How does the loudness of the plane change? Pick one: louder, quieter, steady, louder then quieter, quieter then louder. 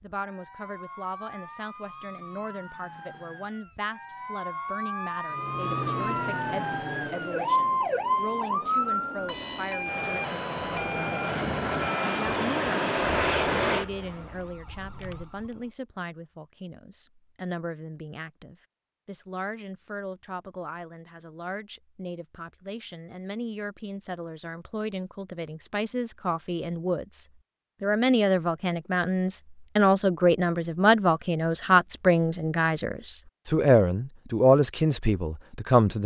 quieter then louder.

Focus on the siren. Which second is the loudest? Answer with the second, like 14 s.
8 s.